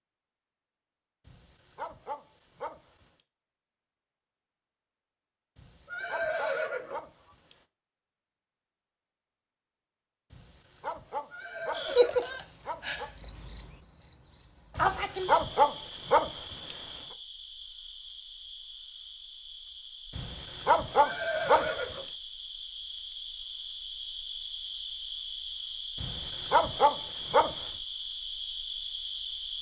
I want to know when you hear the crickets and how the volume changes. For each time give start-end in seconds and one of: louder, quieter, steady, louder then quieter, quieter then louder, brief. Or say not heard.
11.7-29.5 quieter then louder.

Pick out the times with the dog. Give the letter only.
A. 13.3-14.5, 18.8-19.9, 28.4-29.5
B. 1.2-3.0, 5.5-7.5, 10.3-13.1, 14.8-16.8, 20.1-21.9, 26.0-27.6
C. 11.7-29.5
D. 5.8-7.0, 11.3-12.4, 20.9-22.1
B.